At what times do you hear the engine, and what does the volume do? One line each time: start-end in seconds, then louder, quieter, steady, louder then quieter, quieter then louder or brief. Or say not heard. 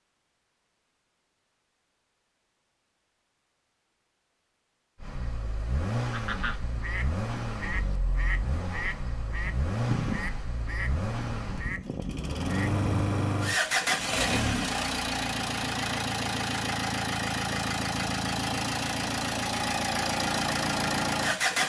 5.0-21.6 louder.